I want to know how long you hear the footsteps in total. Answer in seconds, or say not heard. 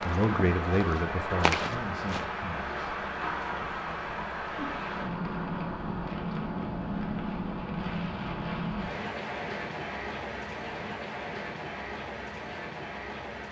2 s.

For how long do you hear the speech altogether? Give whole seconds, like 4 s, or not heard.
3 s.